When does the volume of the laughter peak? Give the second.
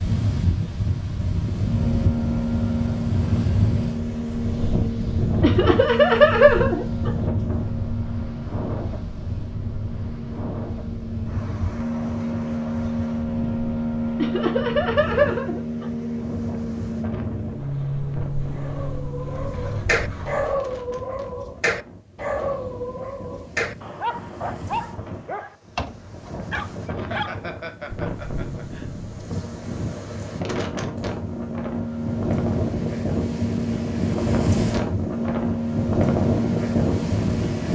6 s.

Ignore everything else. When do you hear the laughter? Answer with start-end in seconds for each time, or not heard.
5.4-7.3, 14.2-16.1, 26.9-28.9.